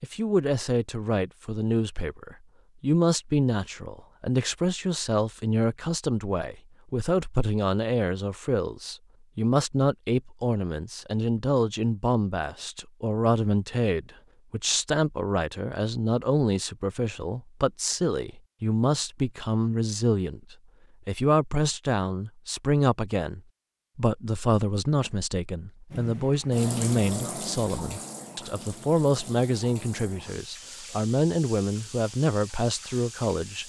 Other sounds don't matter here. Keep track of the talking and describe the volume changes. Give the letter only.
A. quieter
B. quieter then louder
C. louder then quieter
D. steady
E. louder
D.